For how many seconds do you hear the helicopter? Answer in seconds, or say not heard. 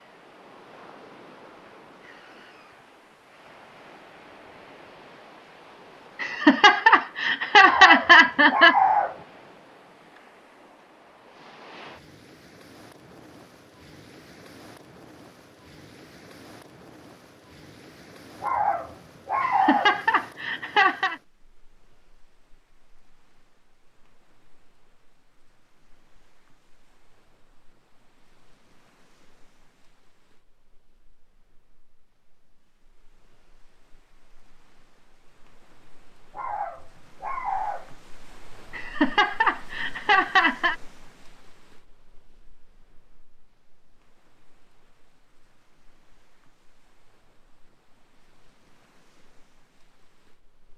not heard.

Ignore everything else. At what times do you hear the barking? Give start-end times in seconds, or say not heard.
7.6-9.2, 18.4-20.0, 36.4-37.9.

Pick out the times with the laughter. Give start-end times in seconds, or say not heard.
6.2-8.8, 19.4-21.1, 38.7-40.8.